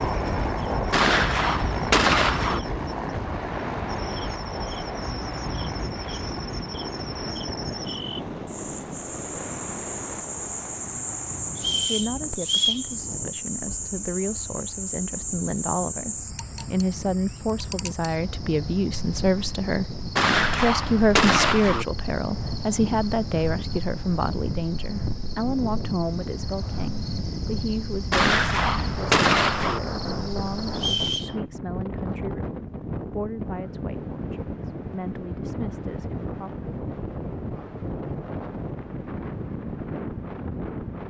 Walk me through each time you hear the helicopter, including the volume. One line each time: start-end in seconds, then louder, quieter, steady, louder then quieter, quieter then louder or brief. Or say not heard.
0.0-10.8 quieter.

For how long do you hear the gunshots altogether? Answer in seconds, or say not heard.
5 s.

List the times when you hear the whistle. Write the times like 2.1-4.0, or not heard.
11.6-12.8, 30.8-31.4.